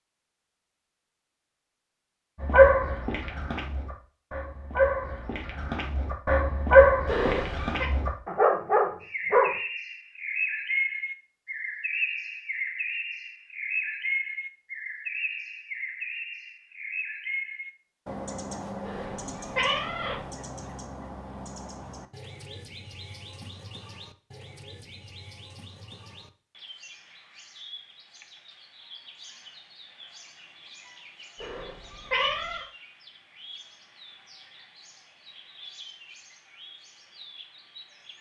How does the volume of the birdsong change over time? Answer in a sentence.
The volume of the birdsong goes down.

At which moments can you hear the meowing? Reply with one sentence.
You can hear the meowing from 7.0 to 7.9 s, from 18.8 to 20.2 s and from 31.4 to 32.6 s.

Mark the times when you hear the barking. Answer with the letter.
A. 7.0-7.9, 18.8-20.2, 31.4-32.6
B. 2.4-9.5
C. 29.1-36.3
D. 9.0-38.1
B.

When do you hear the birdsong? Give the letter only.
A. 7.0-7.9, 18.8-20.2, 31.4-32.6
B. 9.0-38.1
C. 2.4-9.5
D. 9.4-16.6
B.